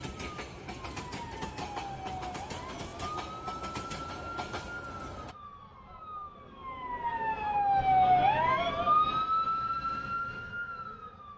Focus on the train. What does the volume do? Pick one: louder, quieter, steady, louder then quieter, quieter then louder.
steady.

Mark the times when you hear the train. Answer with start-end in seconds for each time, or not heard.
0.0-5.3.